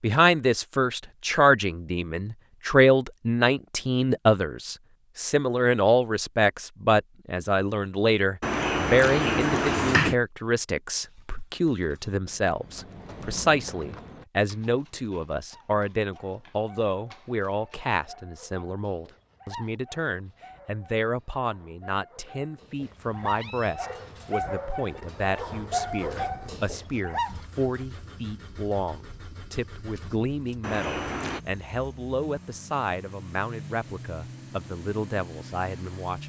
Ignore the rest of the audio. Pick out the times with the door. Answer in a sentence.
The door can be heard from 8.4 to 10.2 s and from 30.6 to 31.4 s.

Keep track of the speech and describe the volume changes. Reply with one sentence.
The loudness of the speech goes down.